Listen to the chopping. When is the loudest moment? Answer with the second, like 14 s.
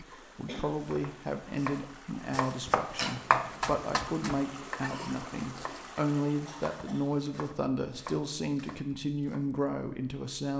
3 s.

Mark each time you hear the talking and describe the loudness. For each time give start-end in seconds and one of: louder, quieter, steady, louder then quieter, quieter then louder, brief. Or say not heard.
0.0-10.5 steady.